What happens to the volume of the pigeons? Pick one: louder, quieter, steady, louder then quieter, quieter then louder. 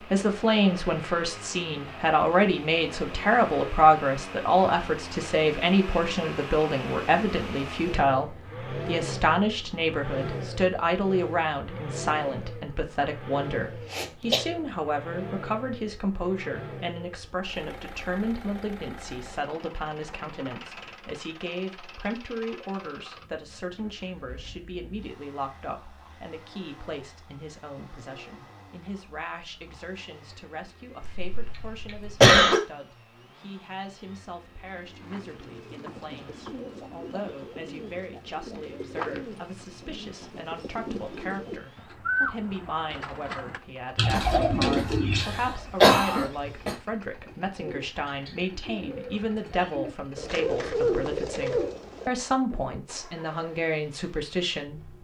louder.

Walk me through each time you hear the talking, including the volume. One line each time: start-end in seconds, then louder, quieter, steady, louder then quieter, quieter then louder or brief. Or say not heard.
0.1-54.9 quieter then louder.